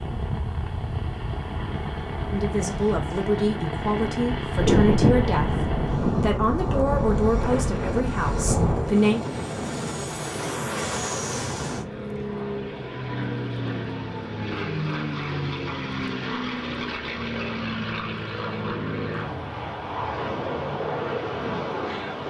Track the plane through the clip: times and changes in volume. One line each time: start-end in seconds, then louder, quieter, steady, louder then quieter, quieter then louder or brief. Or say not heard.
0.0-22.2 steady.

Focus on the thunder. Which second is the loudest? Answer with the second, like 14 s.
5 s.